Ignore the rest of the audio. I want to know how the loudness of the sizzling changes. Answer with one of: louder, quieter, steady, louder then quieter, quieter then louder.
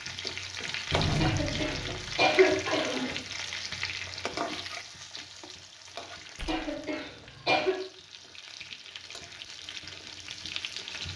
quieter then louder.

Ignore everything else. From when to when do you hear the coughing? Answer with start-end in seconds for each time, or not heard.
1.1-3.1, 6.5-7.8.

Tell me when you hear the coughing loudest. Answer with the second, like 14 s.
2 s.